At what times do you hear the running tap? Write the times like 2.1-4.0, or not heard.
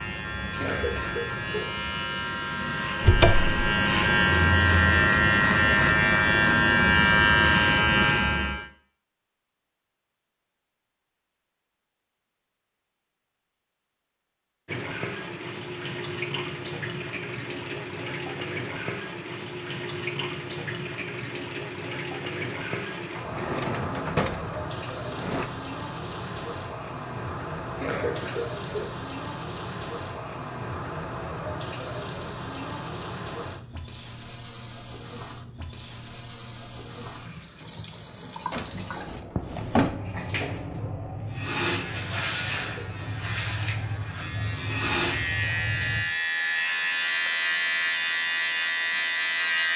14.7-46.0.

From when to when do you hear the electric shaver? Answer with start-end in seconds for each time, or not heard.
0.0-8.7, 41.3-49.7.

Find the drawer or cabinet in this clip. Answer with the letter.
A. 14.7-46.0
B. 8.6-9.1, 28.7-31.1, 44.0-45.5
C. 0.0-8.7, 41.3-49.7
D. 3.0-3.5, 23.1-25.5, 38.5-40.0
D.